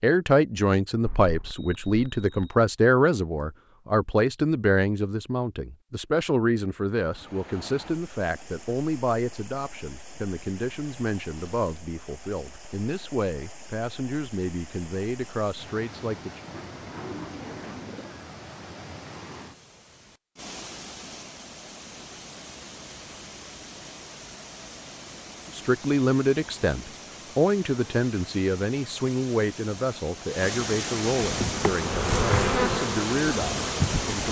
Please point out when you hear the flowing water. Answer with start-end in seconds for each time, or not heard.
7.0-34.2.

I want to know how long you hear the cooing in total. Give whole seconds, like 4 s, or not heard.
2 s.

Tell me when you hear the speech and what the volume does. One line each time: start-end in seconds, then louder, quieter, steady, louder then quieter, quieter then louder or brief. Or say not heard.
0.0-16.4 quieter
25.5-34.2 quieter.